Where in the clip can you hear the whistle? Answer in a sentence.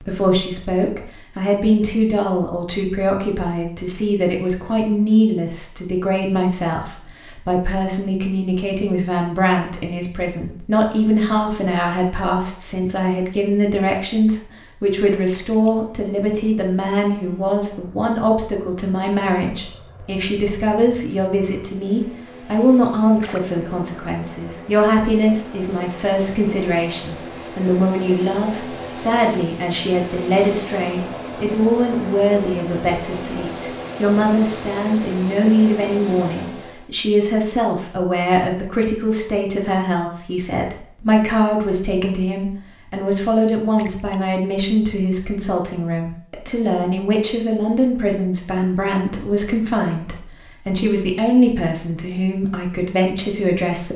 The whistle can't be heard in this clip.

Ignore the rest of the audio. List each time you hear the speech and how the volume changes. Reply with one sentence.
You can hear the speech from 0.0 to 53.9 s, at a steady volume.